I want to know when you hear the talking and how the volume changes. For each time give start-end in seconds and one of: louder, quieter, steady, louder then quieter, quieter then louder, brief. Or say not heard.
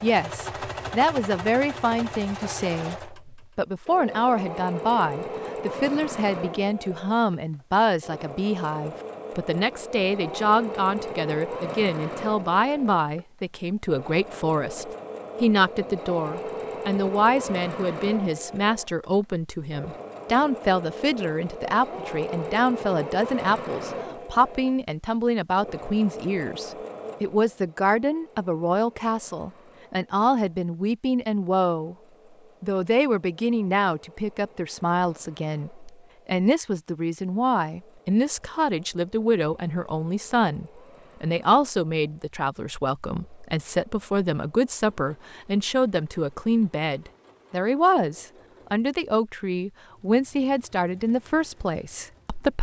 0.0-31.9 steady
32.6-52.5 steady.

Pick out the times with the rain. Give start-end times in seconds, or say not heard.
not heard.